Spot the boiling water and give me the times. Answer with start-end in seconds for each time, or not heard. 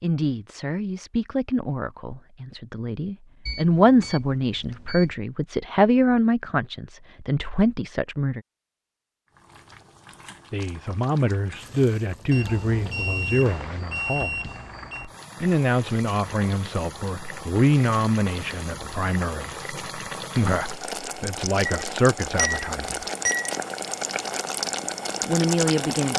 9.2-26.1.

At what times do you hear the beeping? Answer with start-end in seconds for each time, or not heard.
3.5-5.2, 12.3-15.1, 21.6-23.6.